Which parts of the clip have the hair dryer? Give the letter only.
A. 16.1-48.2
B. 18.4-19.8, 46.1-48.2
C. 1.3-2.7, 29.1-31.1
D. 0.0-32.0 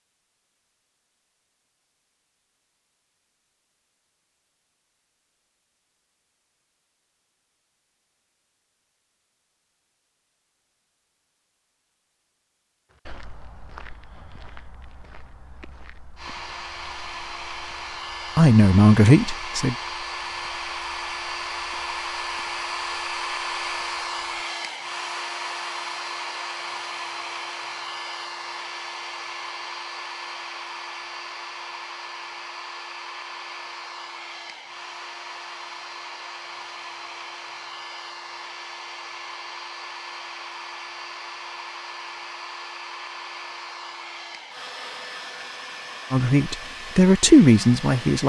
A.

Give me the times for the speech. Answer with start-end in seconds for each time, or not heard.
18.4-19.8, 46.1-48.2.